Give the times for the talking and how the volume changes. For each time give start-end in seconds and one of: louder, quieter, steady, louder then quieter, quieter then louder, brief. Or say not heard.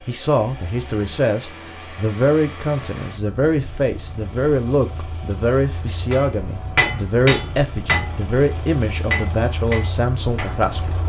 0.1-11.0 steady.